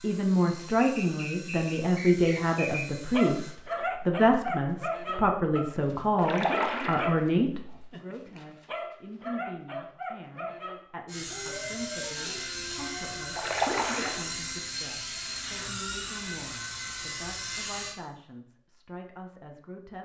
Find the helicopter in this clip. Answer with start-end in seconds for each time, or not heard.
0.0-3.6, 11.1-17.9.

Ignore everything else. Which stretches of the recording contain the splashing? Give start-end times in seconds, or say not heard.
6.2-7.0, 13.3-14.2.